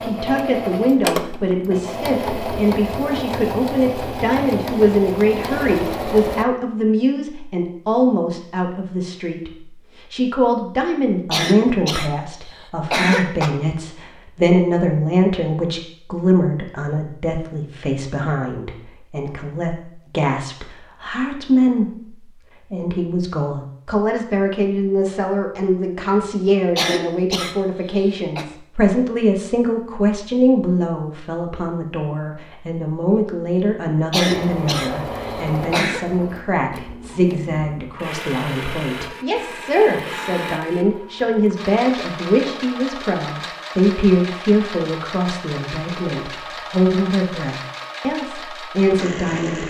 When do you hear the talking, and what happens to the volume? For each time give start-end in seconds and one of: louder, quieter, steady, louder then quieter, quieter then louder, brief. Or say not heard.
0.0-49.6 steady.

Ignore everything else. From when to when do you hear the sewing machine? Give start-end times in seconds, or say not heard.
0.0-6.5, 34.2-49.6.